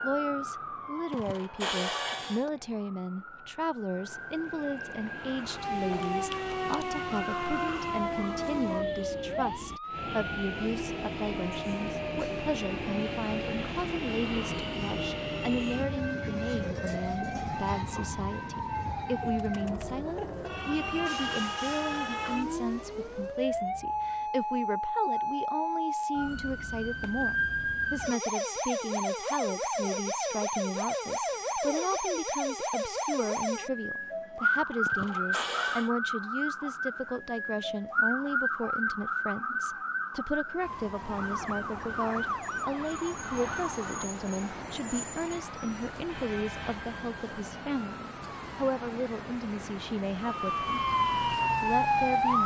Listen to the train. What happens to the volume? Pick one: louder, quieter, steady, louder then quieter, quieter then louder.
louder then quieter.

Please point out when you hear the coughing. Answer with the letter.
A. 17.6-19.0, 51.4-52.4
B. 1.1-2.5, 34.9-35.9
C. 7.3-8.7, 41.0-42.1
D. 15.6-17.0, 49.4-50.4
B.